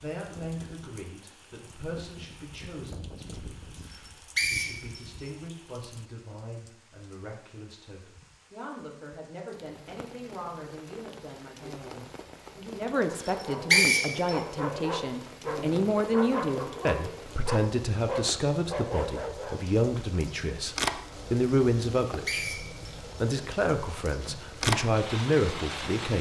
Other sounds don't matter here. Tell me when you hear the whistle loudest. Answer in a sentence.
The loudest moment of the whistle is at 14 seconds.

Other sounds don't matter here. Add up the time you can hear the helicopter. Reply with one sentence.
The helicopter can't be heard in this clip.